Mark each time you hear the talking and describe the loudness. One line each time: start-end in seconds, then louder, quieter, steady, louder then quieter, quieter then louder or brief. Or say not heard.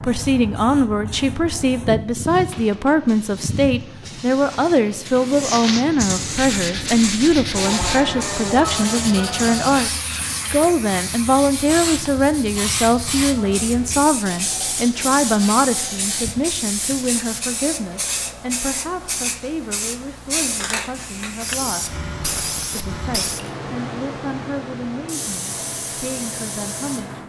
0.0-9.9 steady
10.5-21.9 quieter
22.7-27.2 quieter then louder.